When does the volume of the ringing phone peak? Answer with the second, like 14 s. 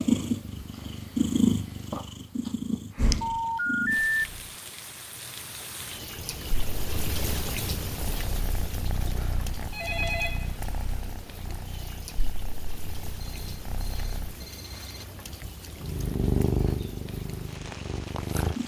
4 s.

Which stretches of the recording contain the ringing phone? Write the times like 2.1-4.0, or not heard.
3.2-4.2, 9.2-10.5, 13.1-15.1.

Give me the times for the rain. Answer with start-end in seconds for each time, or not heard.
3.9-18.6.